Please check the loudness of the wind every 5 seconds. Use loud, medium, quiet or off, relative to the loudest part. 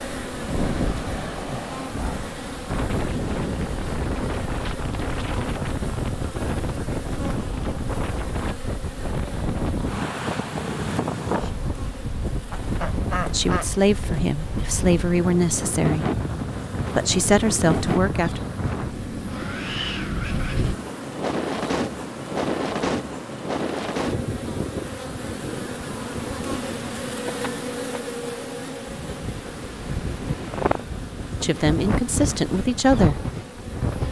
loud, loud, loud, loud, loud, medium, loud.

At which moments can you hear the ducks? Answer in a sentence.
The ducks can be heard from 12.5 to 14.2 s.